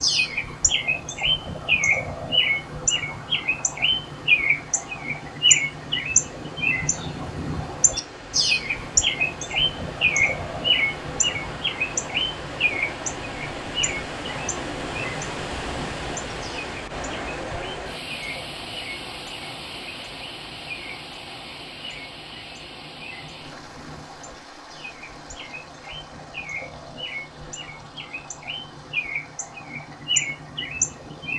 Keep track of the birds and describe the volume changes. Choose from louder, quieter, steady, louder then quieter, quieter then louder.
quieter then louder.